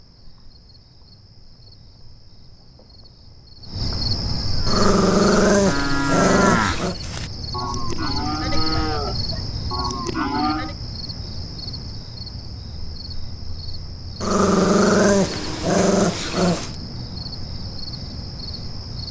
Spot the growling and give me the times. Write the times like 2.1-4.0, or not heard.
4.7-7.0, 14.2-16.8.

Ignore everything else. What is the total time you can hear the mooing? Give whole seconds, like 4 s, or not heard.
6 s.